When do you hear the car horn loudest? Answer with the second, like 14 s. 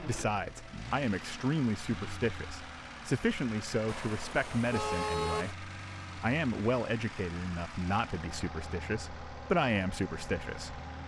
5 s.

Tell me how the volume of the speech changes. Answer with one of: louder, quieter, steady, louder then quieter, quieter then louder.
steady.